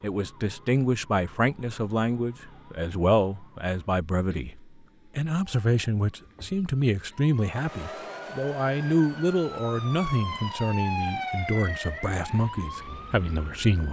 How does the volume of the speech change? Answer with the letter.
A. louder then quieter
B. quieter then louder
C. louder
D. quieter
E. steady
E.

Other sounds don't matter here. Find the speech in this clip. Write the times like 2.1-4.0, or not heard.
0.0-4.5, 5.2-13.8.